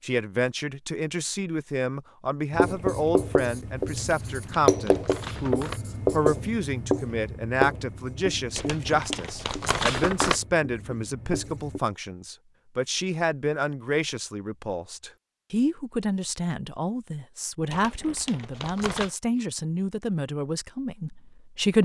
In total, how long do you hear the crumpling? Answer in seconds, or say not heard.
5 s.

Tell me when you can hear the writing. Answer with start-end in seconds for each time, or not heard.
2.5-11.8.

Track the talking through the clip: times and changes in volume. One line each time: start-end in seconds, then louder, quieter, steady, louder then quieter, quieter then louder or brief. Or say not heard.
0.0-21.8 steady.